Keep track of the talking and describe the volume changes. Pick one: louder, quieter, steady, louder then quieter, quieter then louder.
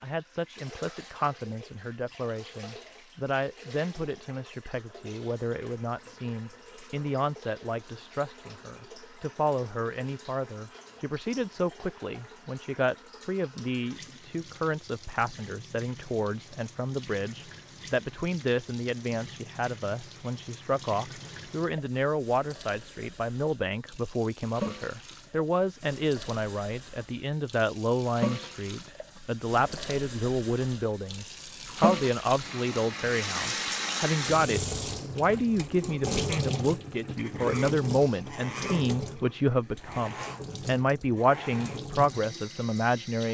louder.